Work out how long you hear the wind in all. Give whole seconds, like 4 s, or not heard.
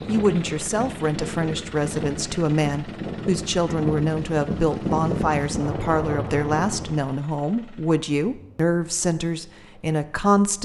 7 s.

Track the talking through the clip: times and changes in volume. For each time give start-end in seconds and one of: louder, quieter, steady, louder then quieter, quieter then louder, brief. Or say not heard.
0.1-10.5 steady.